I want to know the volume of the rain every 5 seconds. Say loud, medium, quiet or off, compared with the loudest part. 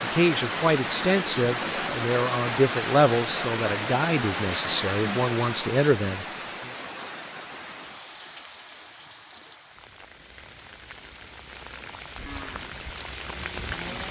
loud, medium, medium.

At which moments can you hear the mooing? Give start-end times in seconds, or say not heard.
12.2-14.0.